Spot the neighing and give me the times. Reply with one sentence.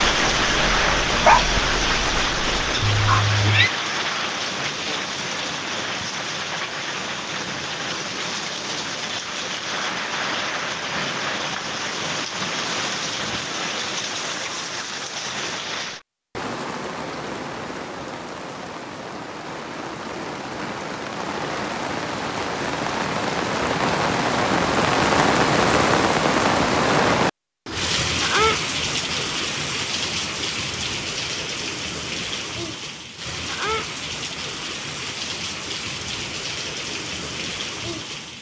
You can hear the neighing from 2.8 to 3.7 s.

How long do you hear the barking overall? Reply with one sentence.
You can hear the barking for 3 seconds altogether.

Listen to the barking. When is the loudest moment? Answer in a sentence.
The loudest moment of the barking is at 1 second.